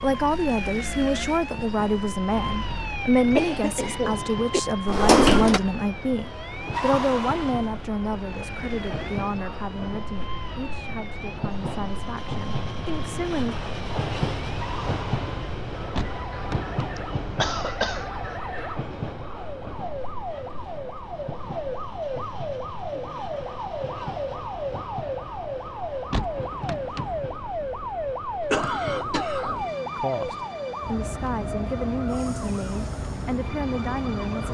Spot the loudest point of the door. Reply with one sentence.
The loudest moment of the door is at 5 seconds.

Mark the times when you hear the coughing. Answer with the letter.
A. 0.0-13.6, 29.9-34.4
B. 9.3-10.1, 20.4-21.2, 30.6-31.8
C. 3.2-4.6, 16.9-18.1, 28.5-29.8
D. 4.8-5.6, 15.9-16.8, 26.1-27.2
C.